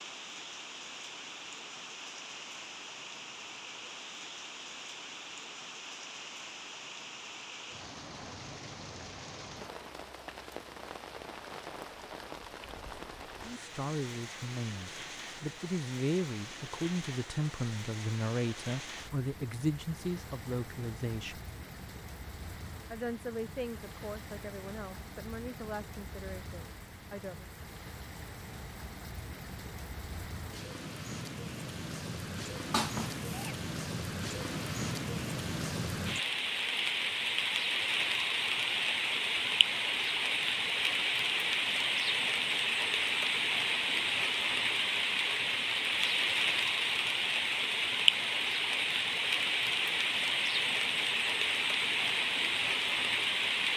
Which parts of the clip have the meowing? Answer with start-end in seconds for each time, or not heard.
32.7-33.5.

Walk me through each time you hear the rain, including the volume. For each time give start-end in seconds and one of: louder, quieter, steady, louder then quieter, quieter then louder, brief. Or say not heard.
0.0-53.7 louder.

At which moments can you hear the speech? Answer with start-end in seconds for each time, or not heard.
13.4-21.4, 22.9-27.5.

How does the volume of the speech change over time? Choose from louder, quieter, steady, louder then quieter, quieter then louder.
quieter.